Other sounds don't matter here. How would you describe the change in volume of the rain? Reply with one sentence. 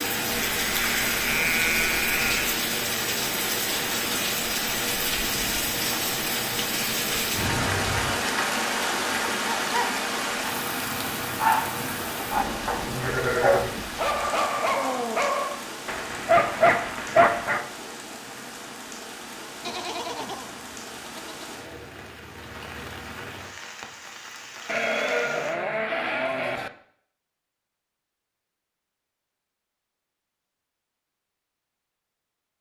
The loudness of the rain goes down.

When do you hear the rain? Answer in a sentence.
The rain can be heard from 0.0 to 25.6 s.